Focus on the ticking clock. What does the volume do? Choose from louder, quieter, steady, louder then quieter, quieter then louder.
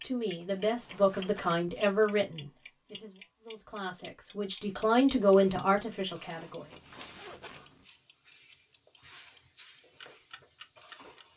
quieter.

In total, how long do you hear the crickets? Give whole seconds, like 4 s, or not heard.
6 s.